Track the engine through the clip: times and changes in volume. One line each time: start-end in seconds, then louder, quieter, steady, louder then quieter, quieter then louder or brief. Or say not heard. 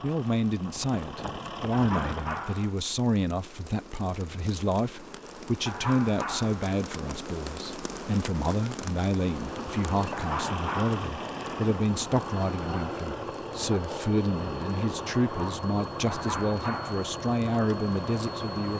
0.0-2.6 brief
9.2-18.7 steady.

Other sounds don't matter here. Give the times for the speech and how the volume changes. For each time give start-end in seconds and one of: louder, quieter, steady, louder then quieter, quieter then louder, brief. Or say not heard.
0.0-18.7 steady.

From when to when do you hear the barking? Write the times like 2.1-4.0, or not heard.
1.7-2.8, 5.7-6.7, 10.1-11.0, 16.1-17.1.